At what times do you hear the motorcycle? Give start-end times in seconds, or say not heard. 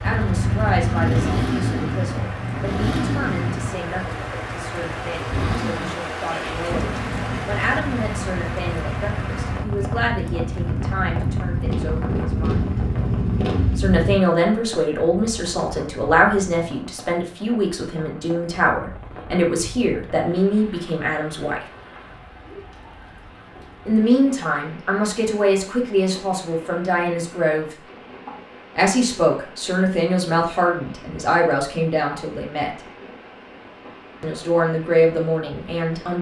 0.0-14.2.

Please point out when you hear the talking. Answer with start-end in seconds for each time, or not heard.
0.0-12.7, 13.8-21.6, 23.9-27.8, 28.8-32.7, 34.2-36.1.